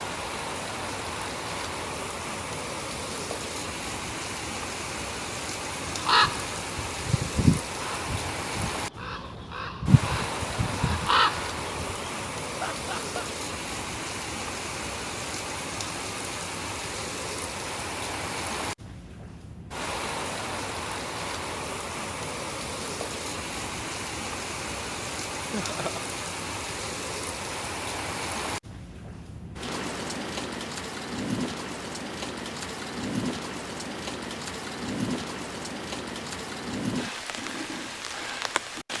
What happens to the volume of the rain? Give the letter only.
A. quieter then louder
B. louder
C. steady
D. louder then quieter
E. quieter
C.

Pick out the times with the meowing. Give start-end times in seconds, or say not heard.
not heard.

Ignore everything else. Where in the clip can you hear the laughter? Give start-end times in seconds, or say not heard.
12.6-13.2, 25.4-26.1.